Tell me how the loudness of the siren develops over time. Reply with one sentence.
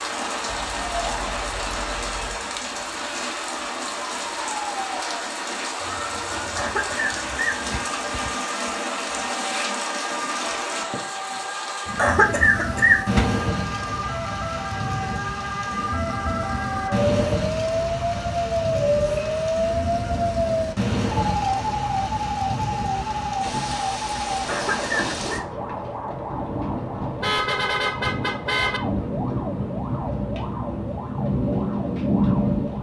The loudness of the siren goes up, then down.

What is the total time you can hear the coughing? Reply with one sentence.
You can hear the coughing for 4 seconds altogether.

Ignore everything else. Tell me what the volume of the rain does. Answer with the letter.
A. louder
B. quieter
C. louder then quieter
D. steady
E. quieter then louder
D.